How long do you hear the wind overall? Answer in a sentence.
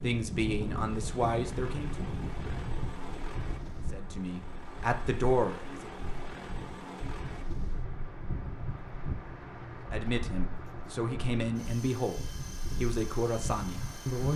You can hear the wind for 14 seconds altogether.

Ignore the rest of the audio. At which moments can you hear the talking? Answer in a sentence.
The talking can be heard from 0.0 to 2.0 s, from 3.9 to 5.9 s and from 9.9 to 14.3 s.